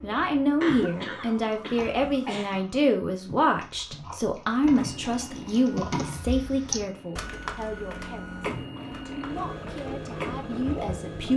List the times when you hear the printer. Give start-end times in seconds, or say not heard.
4.7-11.3.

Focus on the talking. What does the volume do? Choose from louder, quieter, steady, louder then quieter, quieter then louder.
quieter.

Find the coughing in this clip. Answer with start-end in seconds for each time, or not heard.
0.6-2.5.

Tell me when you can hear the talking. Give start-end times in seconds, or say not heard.
0.0-11.3.